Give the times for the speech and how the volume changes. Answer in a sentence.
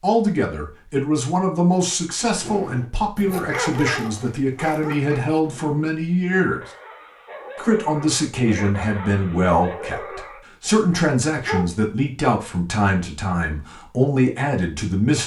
You can hear the speech from 0.0 to 6.6 s, at a steady volume; and from 7.5 to 15.2 s, at a steady volume.